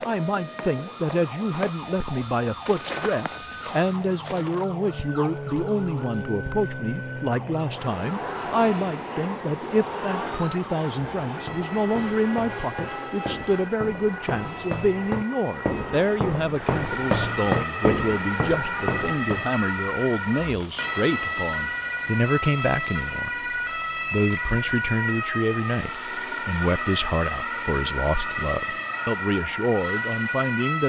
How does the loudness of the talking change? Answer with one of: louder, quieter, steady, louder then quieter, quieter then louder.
steady.